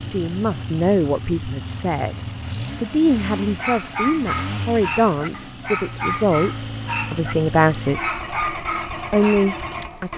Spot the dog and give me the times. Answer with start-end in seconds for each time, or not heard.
3.5-9.5.